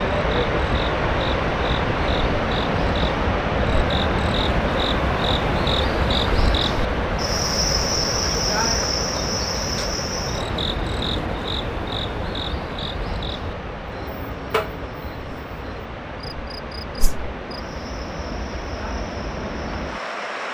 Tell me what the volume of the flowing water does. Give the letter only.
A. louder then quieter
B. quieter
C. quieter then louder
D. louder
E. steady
B.